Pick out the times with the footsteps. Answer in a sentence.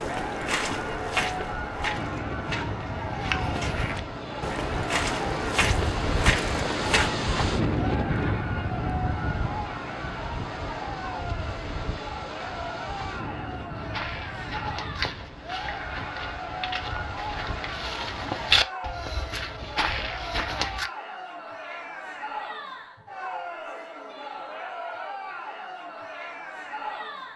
The footsteps can be heard from 0.0 to 7.1 s and from 13.8 to 20.9 s.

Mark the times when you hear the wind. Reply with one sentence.
You can hear the wind from 0.0 to 18.6 s.